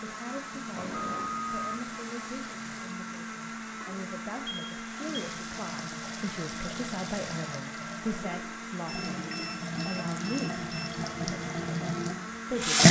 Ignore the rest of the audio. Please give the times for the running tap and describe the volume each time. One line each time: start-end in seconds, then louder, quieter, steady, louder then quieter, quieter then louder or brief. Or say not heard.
0.2-12.8 louder.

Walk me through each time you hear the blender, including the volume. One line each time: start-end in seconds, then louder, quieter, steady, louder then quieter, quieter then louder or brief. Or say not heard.
0.0-12.8 steady.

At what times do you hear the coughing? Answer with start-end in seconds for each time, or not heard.
not heard.